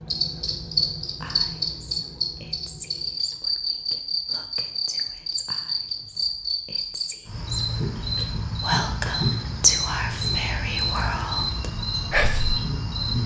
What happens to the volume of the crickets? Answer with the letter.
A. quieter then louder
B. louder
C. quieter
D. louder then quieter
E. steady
E.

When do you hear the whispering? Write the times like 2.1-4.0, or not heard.
1.2-12.6.